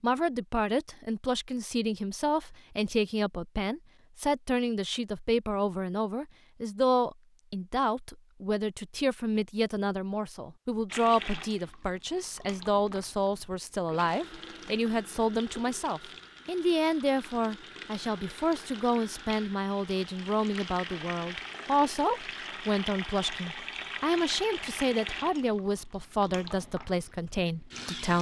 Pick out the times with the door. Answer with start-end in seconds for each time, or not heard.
not heard.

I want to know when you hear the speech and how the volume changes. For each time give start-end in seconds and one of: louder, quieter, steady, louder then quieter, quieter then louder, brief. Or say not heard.
0.0-28.1 steady.